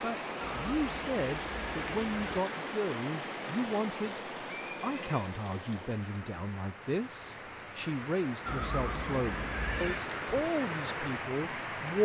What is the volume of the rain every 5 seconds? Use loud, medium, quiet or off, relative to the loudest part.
loud, medium, loud.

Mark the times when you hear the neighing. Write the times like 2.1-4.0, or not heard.
0.4-2.4, 4.5-5.3, 8.4-10.1.